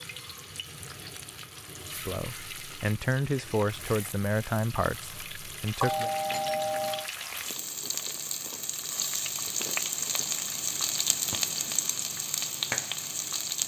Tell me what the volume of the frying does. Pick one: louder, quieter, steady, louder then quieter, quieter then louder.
louder.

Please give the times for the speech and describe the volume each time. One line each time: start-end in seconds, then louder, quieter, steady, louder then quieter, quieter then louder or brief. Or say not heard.
1.9-6.1 louder then quieter.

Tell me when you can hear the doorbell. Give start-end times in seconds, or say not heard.
5.8-7.1.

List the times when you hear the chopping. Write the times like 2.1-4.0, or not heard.
not heard.